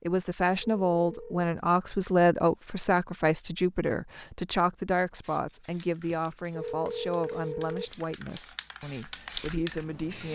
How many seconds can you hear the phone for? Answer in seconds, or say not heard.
3 s.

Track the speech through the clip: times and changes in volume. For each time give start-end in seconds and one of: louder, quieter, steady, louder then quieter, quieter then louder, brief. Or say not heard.
0.0-10.3 quieter.